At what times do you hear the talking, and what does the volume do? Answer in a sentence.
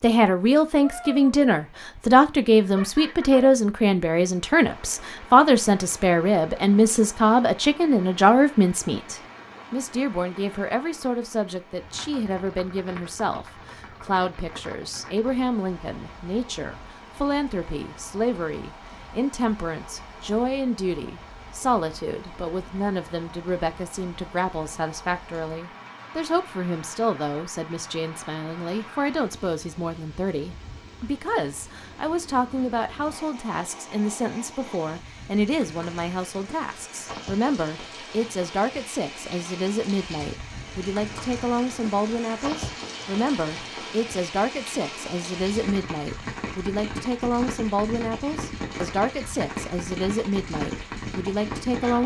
You can hear the talking from 0.0 to 52.0 s, getting quieter.